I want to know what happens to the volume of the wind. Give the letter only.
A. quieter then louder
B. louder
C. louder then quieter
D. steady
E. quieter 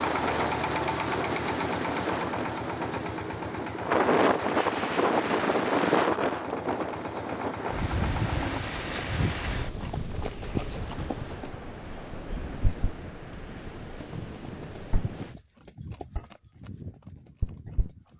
C.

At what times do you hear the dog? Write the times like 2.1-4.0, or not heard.
not heard.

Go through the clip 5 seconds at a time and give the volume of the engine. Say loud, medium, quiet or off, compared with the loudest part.
loud, medium, off, off.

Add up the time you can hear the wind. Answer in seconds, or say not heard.
15 s.